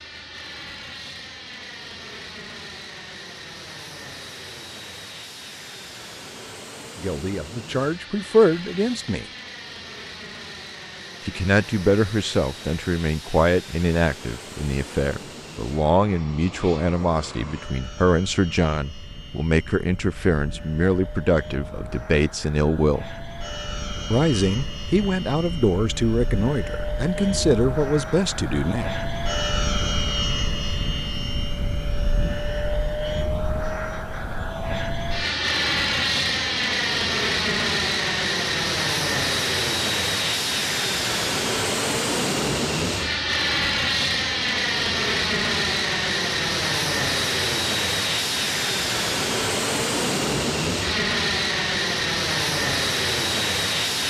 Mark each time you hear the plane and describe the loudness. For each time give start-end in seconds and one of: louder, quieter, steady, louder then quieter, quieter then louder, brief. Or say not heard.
0.0-54.0 louder.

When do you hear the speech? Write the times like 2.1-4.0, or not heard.
7.0-9.2, 11.2-23.1, 24.1-28.9.